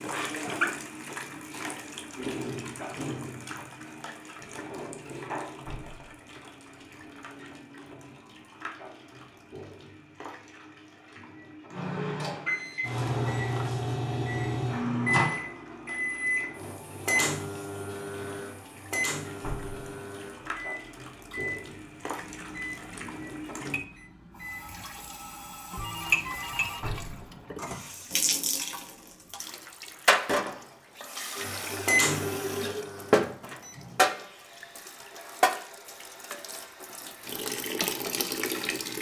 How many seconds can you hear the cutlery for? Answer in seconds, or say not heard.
not heard.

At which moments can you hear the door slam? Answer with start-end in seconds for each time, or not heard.
5.7-6.2, 19.4-19.9, 26.8-27.3.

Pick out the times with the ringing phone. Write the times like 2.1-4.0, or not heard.
25.7-27.6.